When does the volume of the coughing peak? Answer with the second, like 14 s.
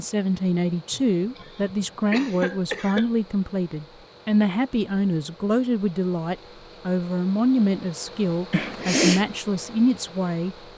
9 s.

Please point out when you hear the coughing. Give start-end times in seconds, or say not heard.
0.9-3.1, 8.5-9.2.